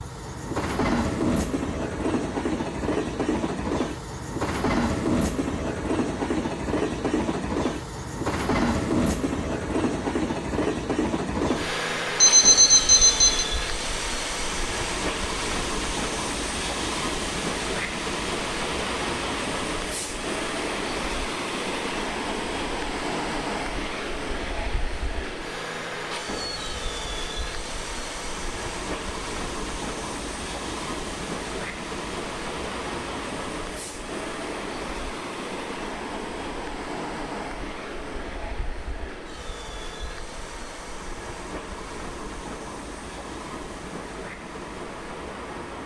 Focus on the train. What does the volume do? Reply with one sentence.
The volume of the train goes down.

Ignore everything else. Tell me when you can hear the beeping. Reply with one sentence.
The beeping can be heard from 12.2 to 13.4 s.